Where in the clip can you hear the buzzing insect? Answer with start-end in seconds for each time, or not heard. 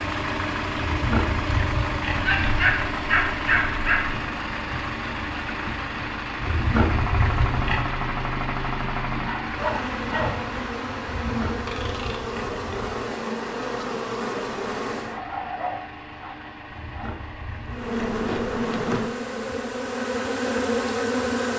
9.4-15.2, 17.6-21.5.